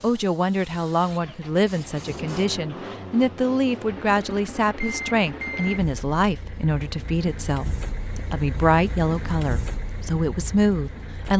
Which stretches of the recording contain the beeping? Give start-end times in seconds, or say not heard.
4.8-5.8.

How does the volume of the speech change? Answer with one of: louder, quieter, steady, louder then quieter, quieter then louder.
steady.